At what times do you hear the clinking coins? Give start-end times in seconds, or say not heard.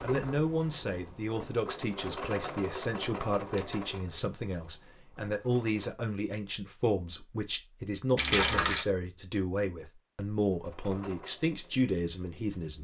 3.5-4.2, 8.2-8.8.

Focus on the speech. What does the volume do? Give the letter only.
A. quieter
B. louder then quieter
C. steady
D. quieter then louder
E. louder
C.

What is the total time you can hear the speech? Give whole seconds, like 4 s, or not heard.
13 s.